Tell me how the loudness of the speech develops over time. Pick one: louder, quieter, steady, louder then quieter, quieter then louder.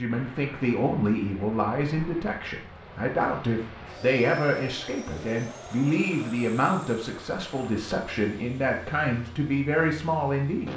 steady.